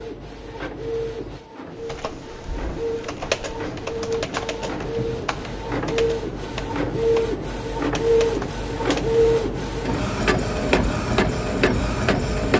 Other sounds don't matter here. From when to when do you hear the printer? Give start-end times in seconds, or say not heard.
0.0-12.5.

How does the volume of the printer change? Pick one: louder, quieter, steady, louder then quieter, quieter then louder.
louder.